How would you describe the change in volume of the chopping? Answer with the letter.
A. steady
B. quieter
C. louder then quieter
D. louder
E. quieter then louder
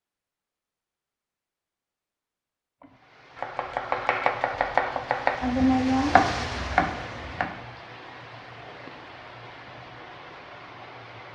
C.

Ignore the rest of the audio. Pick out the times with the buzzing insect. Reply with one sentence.
The buzzing insect can't be heard in this clip.